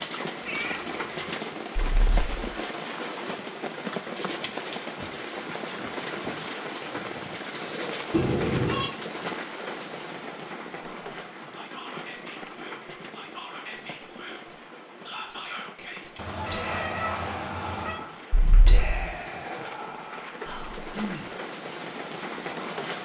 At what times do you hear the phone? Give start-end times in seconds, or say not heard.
1.8-2.2, 18.3-19.0.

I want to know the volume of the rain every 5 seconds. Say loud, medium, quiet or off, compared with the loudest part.
loud, loud, medium, medium, loud.